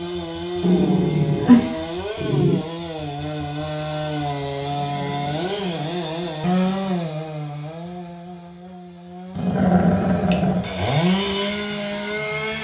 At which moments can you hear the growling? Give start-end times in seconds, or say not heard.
0.6-2.6, 4.8-5.8, 9.3-10.7.